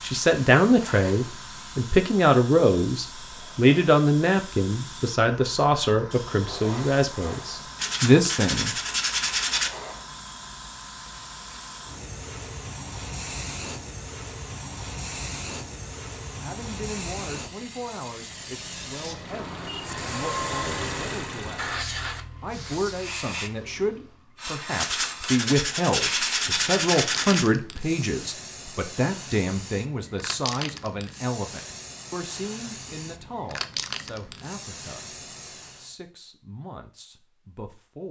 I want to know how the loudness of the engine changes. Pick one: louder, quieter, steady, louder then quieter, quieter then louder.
louder then quieter.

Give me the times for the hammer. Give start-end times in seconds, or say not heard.
not heard.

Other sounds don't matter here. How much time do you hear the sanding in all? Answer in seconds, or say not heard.
5 s.